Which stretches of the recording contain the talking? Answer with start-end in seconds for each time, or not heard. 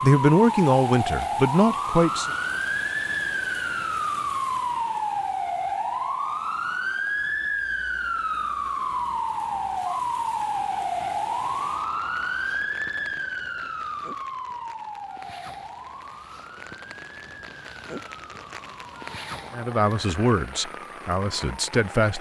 0.0-2.3, 19.6-22.1.